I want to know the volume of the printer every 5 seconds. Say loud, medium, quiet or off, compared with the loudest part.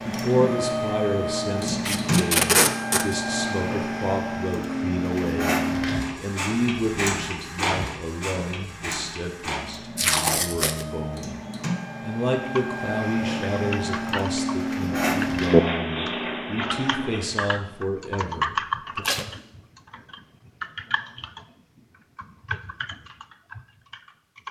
loud, loud, loud, loud, off.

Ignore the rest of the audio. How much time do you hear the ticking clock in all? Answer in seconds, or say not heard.
not heard.